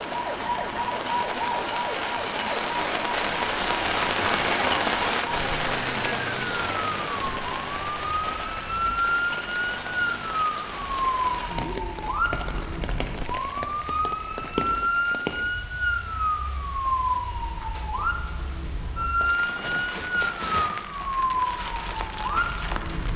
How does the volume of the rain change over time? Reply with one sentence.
The volume of the rain goes down.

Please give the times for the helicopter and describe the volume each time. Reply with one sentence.
The helicopter can't be heard in this clip.